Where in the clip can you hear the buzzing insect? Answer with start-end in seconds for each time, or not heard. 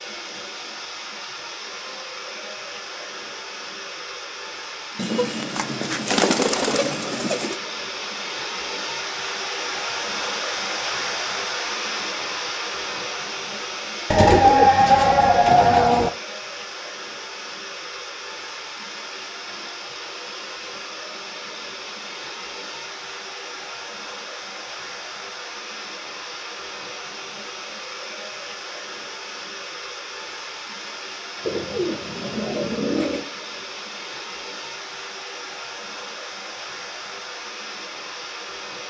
not heard.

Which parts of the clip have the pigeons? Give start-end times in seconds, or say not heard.
5.0-7.5, 14.1-16.1, 31.4-33.3.